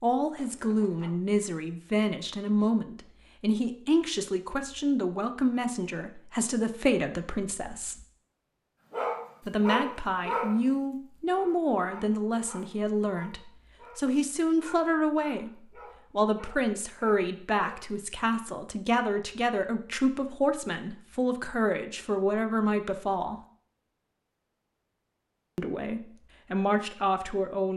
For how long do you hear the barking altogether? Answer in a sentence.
The barking can be heard for 9 seconds in total.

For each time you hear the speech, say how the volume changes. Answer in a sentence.
The speech can be heard from 0.0 to 8.1 s, at a steady volume; from 9.4 to 23.4 s, at a steady volume; and briefly from 25.6 to 27.7 s.